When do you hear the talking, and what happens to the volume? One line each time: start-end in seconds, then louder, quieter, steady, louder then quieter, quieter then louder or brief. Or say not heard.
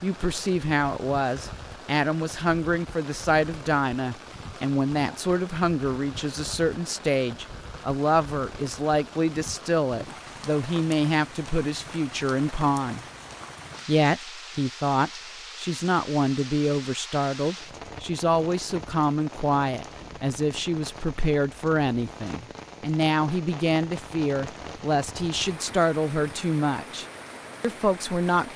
0.0-13.0 steady
13.8-28.5 steady.